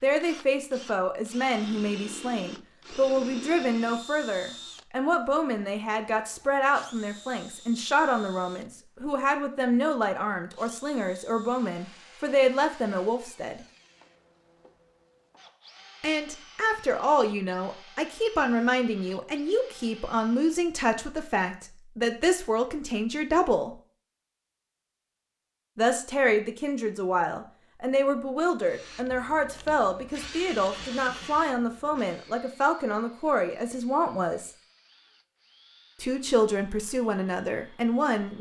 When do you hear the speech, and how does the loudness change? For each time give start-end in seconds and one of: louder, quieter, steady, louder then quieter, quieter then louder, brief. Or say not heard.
0.0-13.7 steady
16.0-23.8 steady
25.8-34.5 steady
36.0-38.3 brief.